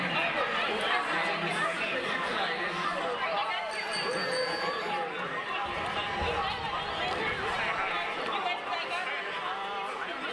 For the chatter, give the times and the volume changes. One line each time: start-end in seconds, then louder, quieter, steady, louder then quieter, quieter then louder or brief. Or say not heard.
0.0-10.2 steady.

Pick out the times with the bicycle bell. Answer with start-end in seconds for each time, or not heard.
3.7-5.0.